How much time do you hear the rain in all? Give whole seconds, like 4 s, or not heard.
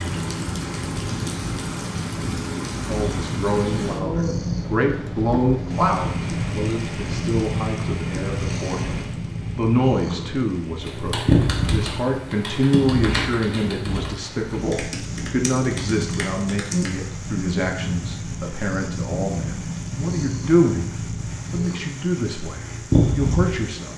24 s.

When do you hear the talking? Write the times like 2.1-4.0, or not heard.
2.9-23.9.